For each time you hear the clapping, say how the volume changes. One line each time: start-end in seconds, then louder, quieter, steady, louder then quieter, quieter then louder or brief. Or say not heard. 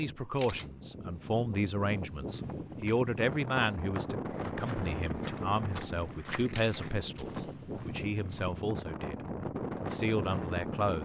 not heard.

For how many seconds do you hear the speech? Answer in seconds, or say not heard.
11 s.